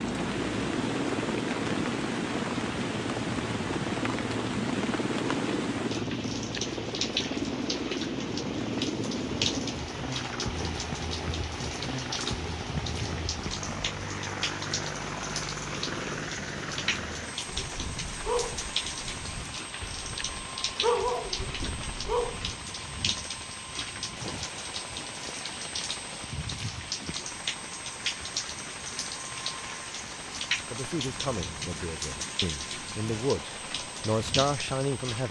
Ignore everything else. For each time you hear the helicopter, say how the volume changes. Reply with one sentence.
The helicopter can be heard from 0.0 to 35.2 s, getting quieter.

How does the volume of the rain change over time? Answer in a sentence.
The loudness of the rain stays about the same.